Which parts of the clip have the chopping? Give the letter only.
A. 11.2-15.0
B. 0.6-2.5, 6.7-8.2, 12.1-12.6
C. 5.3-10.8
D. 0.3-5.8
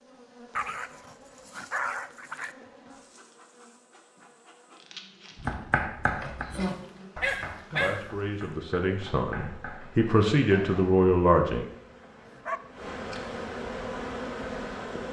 C.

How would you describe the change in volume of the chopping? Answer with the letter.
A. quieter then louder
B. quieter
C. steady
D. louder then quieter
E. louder
B.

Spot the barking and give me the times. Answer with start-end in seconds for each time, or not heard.
0.6-2.5, 6.7-8.2, 12.1-12.6.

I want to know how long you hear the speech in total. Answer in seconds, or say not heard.
4 s.